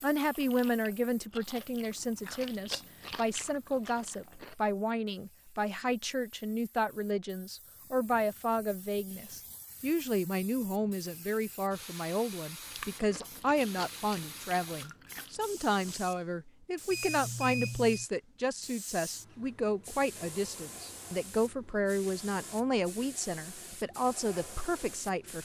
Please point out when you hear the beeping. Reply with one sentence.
The beeping can be heard from 16.9 to 18.1 s.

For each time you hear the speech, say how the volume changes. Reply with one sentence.
You can hear the speech from 0.0 to 25.4 s, at a steady volume.